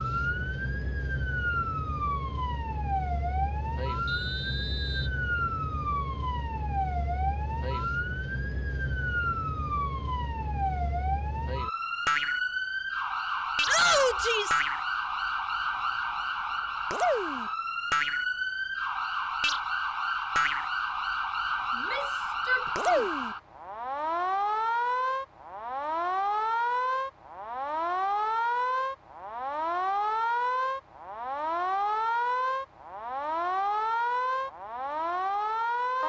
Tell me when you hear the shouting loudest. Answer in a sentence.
The loudest moment of the shouting is at 14 seconds.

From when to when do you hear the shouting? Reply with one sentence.
You can hear the shouting from 13.7 to 14.6 s and from 21.8 to 23.1 s.